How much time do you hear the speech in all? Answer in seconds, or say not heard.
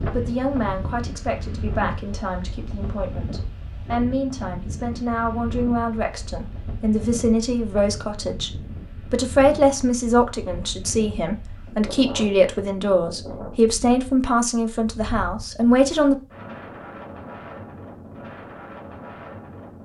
16 s.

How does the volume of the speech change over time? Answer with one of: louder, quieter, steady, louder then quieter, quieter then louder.
louder.